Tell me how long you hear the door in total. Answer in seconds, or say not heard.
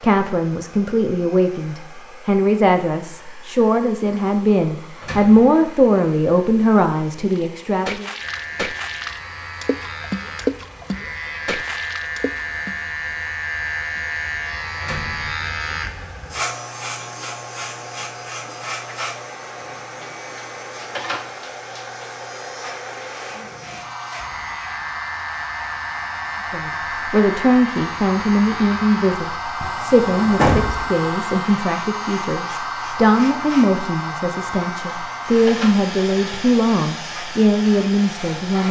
2 s.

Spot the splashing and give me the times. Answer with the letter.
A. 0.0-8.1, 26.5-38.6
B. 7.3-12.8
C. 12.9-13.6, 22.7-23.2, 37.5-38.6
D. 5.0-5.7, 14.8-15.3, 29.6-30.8
B.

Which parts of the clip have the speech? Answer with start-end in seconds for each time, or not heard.
0.0-8.1, 26.5-38.6.